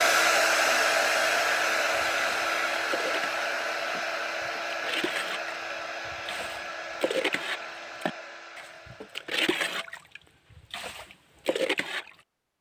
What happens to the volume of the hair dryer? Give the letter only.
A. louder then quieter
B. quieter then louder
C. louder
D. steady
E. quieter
E.